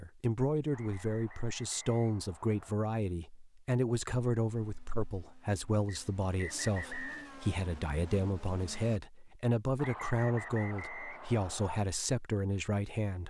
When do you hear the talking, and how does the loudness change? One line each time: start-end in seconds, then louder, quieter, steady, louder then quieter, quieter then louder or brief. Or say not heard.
0.0-13.2 steady.